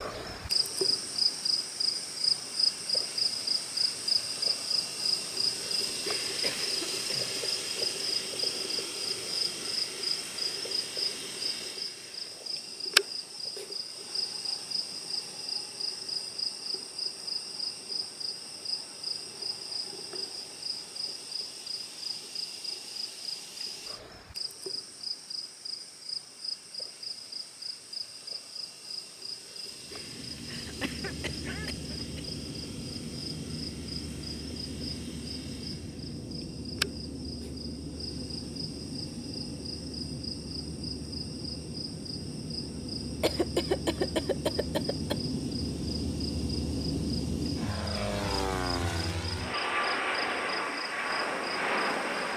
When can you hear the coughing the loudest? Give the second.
44 s.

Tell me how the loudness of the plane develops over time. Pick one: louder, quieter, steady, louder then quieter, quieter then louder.
louder.